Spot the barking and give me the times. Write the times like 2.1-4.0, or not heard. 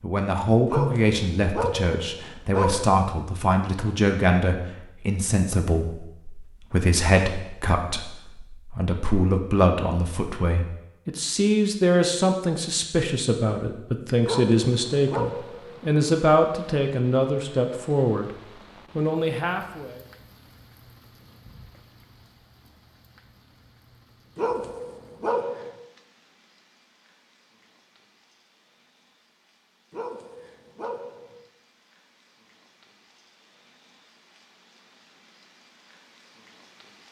0.7-3.0, 14.2-15.8, 24.4-25.8, 29.9-31.4.